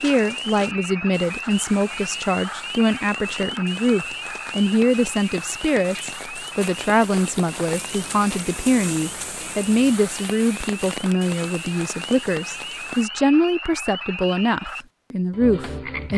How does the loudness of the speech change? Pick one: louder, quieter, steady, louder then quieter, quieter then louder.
steady.